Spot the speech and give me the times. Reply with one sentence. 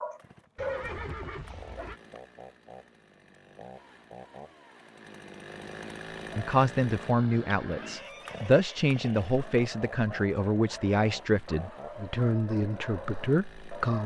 You can hear the speech from 6.3 to 14.0 s.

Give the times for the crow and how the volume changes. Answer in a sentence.
The crow can't be heard in this clip.